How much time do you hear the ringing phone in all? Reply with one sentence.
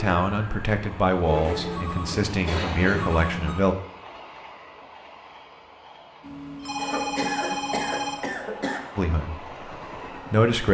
You can hear the ringing phone for 4 seconds altogether.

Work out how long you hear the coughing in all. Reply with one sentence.
The coughing can be heard for 4 seconds in total.